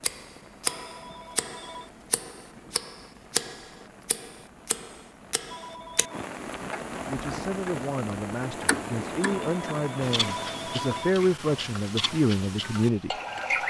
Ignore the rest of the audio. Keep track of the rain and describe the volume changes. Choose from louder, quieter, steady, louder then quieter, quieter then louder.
louder.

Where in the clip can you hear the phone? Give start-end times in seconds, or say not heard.
0.8-1.9, 5.5-6.3, 9.2-11.2.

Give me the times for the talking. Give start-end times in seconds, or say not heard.
7.0-13.1.